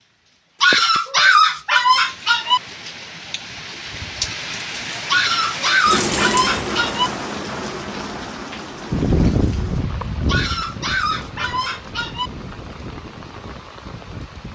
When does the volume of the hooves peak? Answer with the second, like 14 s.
9 s.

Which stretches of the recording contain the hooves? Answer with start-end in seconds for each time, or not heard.
8.9-14.5.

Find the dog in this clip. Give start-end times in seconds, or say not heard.
0.6-2.6, 5.0-7.1, 10.2-12.3.